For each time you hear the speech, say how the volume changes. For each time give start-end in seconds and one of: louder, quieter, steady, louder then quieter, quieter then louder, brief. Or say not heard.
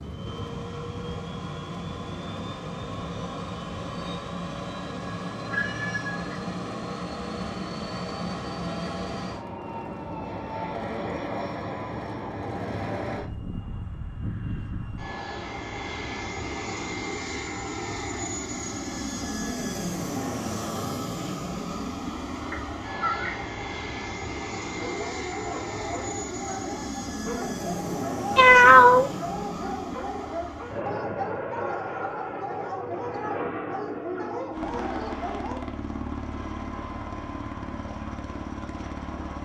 not heard.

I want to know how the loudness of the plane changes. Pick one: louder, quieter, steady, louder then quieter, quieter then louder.
steady.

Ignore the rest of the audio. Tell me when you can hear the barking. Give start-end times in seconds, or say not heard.
24.8-35.6.